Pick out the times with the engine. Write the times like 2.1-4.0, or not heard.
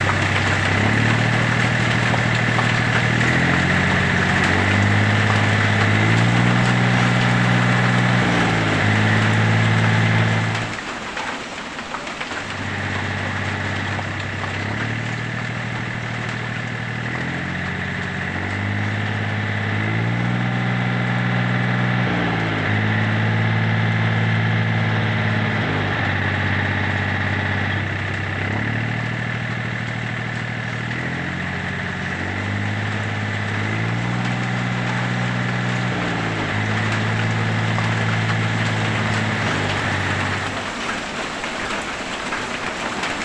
0.0-10.8, 12.3-40.8.